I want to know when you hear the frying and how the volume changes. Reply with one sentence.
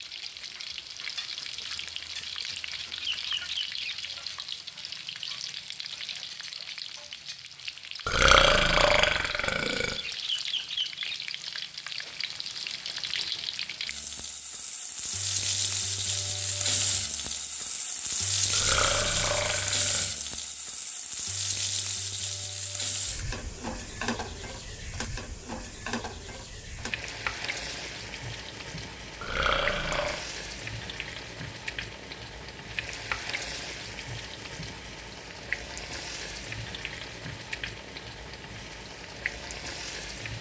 The frying can be heard from 0.0 to 40.3 s, getting louder then quieter.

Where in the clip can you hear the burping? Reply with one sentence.
You can hear the burping from 8.1 to 9.9 s, from 18.5 to 20.1 s and from 29.2 to 30.2 s.